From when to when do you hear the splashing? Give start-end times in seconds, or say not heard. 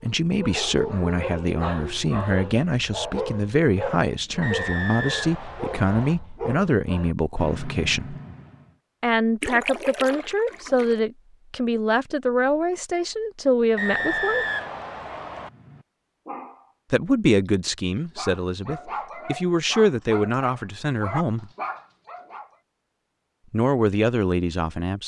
9.4-11.1.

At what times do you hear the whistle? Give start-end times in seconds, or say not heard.
4.4-6.2, 13.8-15.5.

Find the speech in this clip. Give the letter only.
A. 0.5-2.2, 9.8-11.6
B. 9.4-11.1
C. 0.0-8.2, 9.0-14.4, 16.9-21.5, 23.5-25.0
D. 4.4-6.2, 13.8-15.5
C.